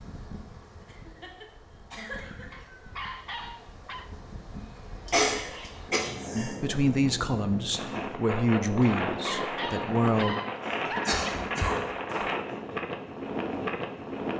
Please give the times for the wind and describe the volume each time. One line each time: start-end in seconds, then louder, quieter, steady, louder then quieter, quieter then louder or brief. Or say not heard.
0.0-14.3 louder.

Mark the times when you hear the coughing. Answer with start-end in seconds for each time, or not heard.
0.8-2.6, 5.0-6.5, 10.7-12.2.